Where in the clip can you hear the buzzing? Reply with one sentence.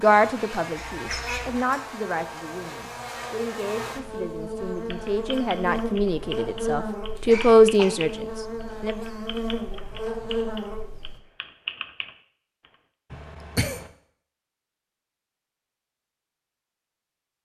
You can hear the buzzing from 0.0 to 11.2 s.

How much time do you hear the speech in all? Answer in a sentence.
The speech can be heard for 9 seconds in total.